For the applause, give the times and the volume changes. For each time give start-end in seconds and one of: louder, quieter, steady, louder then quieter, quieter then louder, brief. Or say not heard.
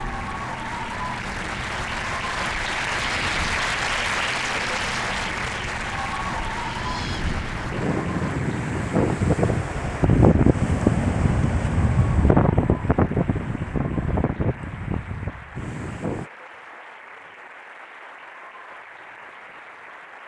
0.0-20.2 quieter.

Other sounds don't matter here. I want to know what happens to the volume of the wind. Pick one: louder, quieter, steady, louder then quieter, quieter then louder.
louder then quieter.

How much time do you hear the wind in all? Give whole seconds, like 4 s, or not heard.
16 s.